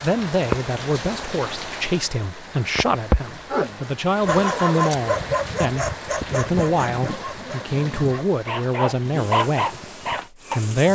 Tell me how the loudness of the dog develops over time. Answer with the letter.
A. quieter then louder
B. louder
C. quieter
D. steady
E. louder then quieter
A.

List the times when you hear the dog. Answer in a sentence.
You can hear the dog from 3.5 to 10.6 s.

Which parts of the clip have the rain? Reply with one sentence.
The rain can be heard from 0.0 to 10.9 s.